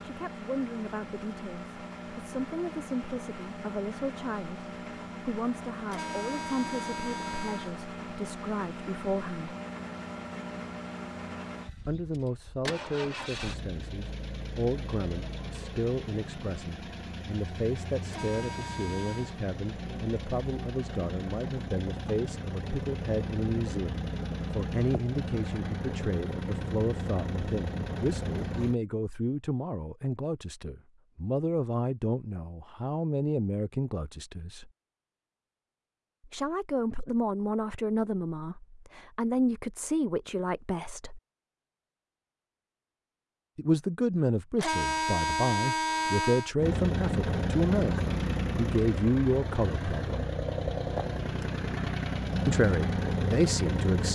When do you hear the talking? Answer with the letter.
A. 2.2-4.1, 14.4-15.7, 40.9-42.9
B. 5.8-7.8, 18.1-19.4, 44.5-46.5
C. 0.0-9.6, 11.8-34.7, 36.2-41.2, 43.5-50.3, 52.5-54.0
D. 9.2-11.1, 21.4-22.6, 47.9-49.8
C.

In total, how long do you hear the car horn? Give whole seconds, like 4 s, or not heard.
5 s.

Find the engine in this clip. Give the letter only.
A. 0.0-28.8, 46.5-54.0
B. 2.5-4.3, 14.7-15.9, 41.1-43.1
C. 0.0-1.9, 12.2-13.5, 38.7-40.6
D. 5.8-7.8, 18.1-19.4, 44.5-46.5
A.